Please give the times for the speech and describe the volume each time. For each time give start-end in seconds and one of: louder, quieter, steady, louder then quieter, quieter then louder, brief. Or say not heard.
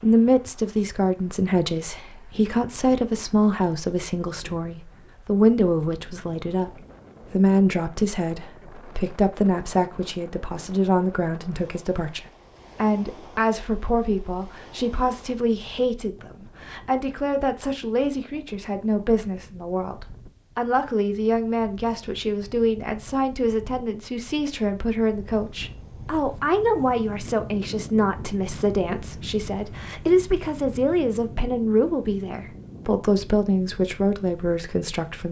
0.0-35.2 steady.